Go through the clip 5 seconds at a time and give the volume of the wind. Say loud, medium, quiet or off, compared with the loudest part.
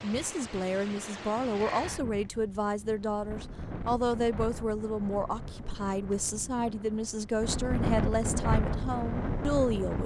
medium, loud.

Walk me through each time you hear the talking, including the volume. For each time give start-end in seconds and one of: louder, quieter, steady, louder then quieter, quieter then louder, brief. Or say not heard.
0.0-10.0 steady.